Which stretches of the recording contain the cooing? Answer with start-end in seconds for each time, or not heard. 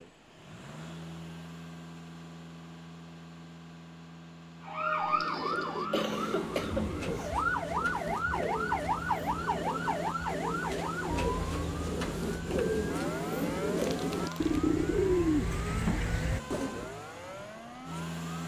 5.0-16.9.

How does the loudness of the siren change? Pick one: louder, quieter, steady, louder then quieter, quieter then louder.
quieter.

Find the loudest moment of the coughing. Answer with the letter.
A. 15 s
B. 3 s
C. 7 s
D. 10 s
C.